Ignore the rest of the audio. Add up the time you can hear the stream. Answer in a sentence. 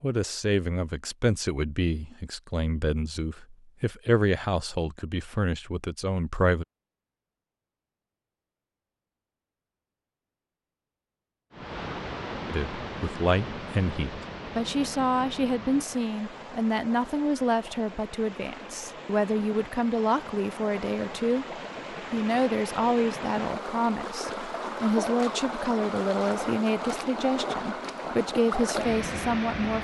You can hear the stream for 18 seconds altogether.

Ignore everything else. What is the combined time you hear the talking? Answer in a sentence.
The talking can be heard for 24 seconds in total.